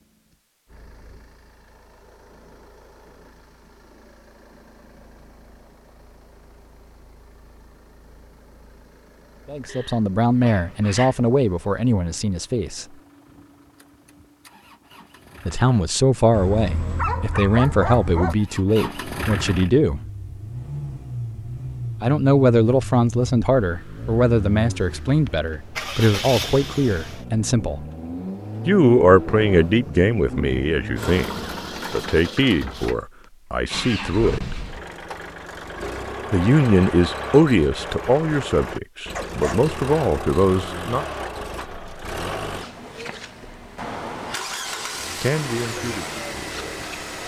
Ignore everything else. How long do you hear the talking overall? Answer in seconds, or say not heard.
26 s.